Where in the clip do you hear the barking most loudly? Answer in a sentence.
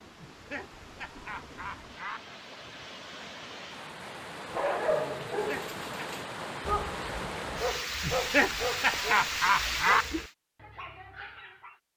The loudest moment of the barking is at 5 seconds.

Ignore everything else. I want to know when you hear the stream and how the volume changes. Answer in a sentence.
You can hear the stream from 0.0 to 10.3 s, getting louder.